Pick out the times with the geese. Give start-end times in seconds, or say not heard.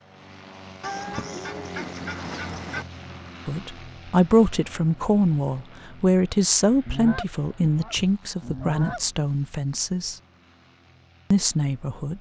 0.8-2.9, 6.8-9.2.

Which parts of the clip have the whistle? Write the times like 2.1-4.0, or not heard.
not heard.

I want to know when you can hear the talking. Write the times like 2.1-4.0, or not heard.
3.5-10.2, 11.3-12.1.